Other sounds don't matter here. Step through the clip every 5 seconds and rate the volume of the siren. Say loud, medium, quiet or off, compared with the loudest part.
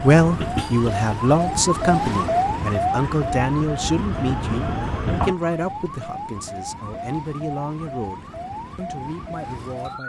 loud, medium.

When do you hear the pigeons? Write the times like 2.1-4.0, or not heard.
not heard.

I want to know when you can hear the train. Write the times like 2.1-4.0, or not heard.
0.0-5.3.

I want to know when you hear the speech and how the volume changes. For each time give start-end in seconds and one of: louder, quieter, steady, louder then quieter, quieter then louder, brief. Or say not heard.
0.0-10.0 quieter.